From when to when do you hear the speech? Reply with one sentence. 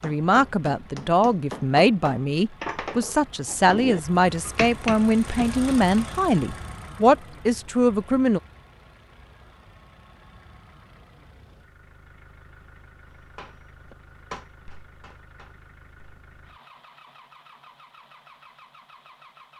The speech can be heard from 0.0 to 8.4 s.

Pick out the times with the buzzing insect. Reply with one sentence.
The buzzing insect can't be heard in this clip.